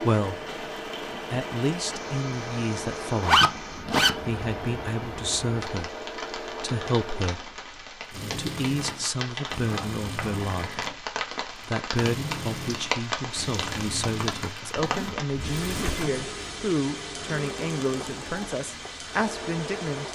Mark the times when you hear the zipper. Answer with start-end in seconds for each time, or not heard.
3.2-4.2, 9.7-10.9, 14.8-16.1.